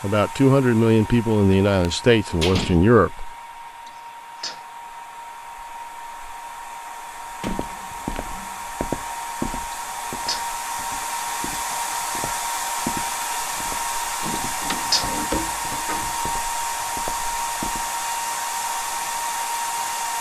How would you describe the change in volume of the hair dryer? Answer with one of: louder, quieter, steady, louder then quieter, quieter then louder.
louder.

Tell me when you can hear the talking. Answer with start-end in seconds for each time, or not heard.
0.0-3.3.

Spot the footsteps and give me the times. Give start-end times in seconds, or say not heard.
7.4-17.9.